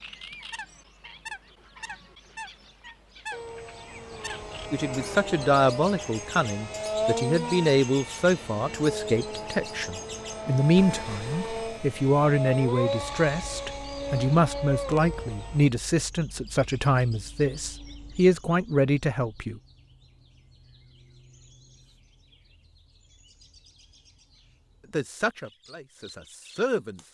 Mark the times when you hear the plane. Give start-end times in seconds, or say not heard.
3.3-15.7.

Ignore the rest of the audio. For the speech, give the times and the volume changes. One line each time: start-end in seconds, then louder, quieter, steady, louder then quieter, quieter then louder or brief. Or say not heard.
4.7-19.6 steady
24.9-27.0 brief.